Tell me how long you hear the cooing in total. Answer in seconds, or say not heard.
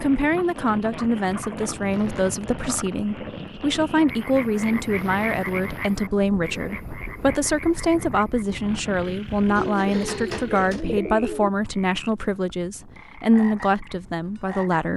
2 s.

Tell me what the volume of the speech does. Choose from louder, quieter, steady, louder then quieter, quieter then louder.
steady.